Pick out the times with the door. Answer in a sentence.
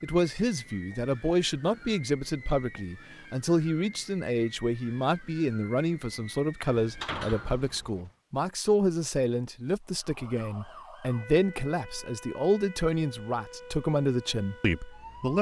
The door can be heard from 6.8 to 8.0 s.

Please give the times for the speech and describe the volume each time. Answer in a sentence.
The speech can be heard from 0.0 to 15.3 s, at a steady volume.